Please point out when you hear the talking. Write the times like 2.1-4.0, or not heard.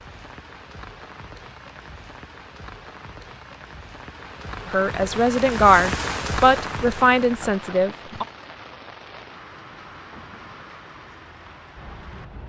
4.7-8.2.